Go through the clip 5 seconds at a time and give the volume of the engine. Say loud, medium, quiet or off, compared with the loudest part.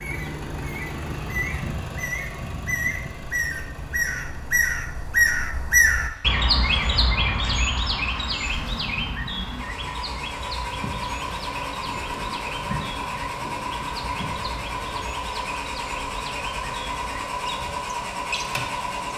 medium, medium, loud, loud.